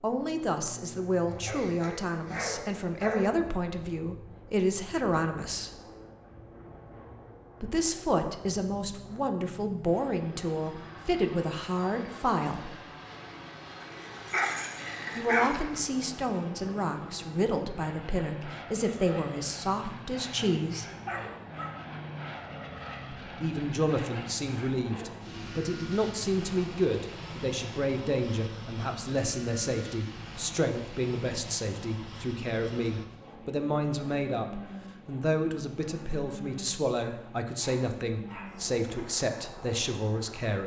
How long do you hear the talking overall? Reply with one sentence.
The talking can be heard for 34 seconds in total.